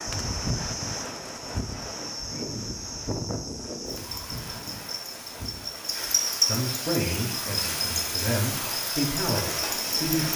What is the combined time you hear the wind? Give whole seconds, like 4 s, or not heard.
6 s.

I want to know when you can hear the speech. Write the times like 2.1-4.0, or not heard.
6.5-10.3.